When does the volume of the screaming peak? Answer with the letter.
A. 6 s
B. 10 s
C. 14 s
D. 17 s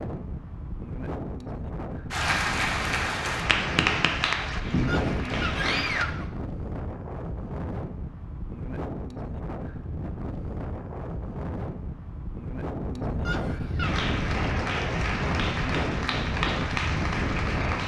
A.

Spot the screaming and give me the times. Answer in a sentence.
You can hear the screaming from 4.8 to 6.3 s and from 13.2 to 13.9 s.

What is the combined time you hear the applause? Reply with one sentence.
You can hear the applause for 8 seconds altogether.